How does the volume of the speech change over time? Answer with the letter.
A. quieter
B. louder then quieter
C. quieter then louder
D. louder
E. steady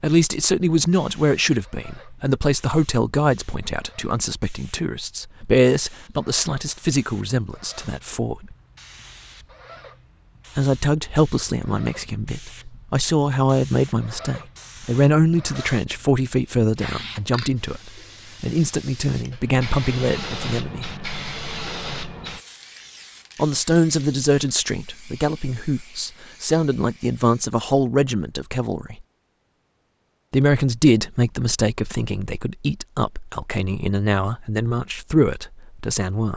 E.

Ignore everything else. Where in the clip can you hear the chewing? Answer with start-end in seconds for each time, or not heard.
not heard.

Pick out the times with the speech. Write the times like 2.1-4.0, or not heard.
0.0-8.6, 10.6-20.9, 23.4-29.1, 30.3-36.3.